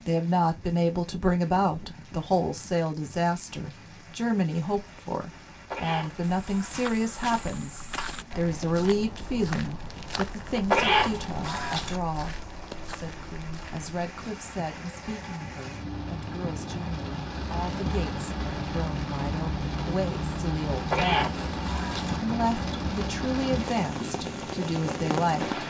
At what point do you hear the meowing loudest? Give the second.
11 s.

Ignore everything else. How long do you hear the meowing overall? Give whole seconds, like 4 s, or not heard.
4 s.